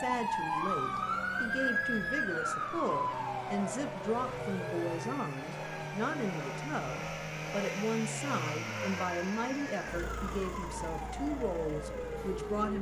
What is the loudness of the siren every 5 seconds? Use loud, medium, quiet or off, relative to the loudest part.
loud, medium, medium.